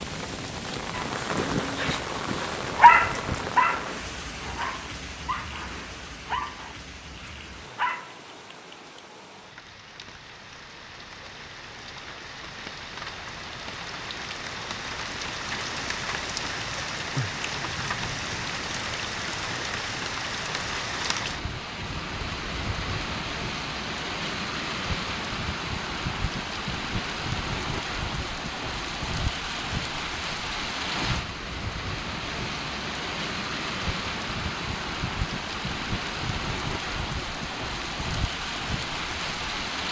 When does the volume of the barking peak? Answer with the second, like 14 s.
3 s.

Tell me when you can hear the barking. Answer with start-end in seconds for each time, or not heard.
0.9-8.2.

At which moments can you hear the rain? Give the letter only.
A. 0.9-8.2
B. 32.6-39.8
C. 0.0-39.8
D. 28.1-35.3
C.